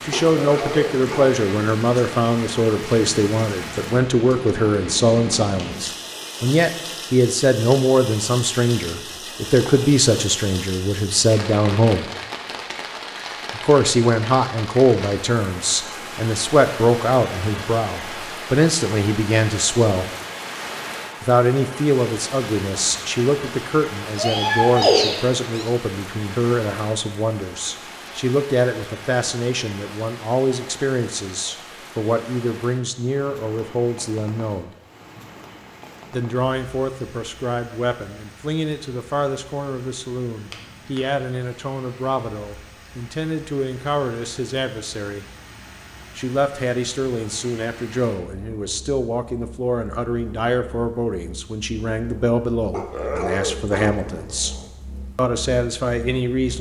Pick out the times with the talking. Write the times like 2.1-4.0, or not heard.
0.0-12.1, 13.6-20.1, 21.2-34.7, 36.1-45.2, 46.1-54.5, 55.1-56.5.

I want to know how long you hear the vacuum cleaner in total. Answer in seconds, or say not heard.
not heard.